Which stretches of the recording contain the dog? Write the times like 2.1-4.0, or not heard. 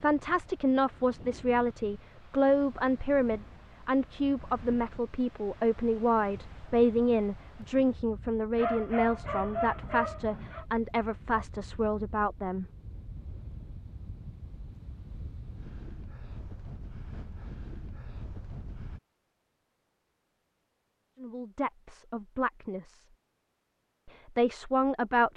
8.6-10.7.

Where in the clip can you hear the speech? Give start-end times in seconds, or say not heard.
0.0-12.7, 21.2-23.1, 24.1-25.3.